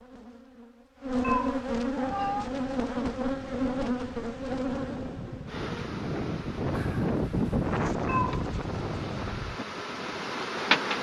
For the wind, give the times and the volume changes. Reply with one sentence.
The wind can be heard from 1.9 to 10.9 s, getting louder then quieter.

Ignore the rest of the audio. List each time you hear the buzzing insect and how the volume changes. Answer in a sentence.
The buzzing insect can be heard from 0.0 to 10.9 s, getting quieter then louder.